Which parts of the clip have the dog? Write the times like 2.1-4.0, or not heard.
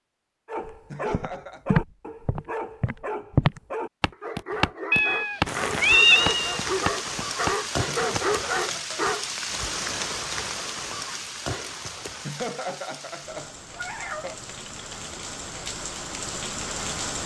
0.5-9.3.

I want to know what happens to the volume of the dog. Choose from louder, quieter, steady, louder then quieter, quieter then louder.
louder.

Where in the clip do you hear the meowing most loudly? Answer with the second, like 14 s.
6 s.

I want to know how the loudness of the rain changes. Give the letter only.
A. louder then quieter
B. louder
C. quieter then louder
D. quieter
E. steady
C.